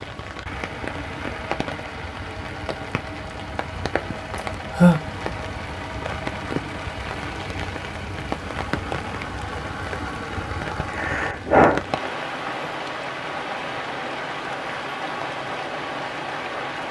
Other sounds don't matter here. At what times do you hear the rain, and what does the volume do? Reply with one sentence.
You can hear the rain from 0.0 to 16.8 s, at a steady volume.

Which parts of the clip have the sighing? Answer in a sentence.
You can hear the sighing from 4.3 to 5.0 s and from 10.9 to 11.8 s.